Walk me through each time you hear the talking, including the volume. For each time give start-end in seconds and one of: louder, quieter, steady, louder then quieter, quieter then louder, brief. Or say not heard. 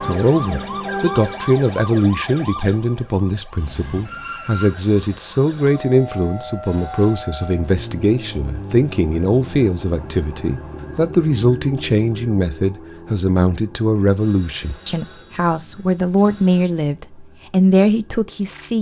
0.1-18.7 steady.